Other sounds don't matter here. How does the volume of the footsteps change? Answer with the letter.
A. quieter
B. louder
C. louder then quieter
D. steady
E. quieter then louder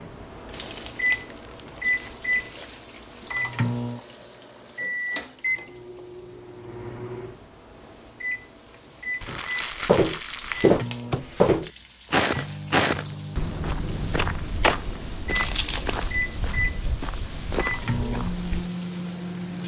A.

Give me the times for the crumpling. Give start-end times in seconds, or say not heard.
0.5-2.3, 9.2-10.7, 15.3-16.2.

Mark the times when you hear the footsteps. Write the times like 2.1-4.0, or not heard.
9.2-18.7.